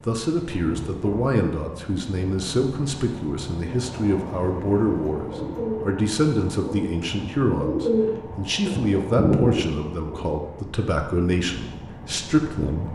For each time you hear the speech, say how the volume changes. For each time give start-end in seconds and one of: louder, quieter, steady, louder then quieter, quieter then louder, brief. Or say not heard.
0.1-12.9 steady.